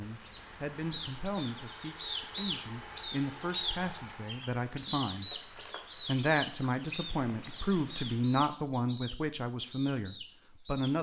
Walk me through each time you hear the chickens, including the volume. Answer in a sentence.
The chickens can be heard from 0.2 to 10.9 s, getting quieter.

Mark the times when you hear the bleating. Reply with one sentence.
The bleating can't be heard in this clip.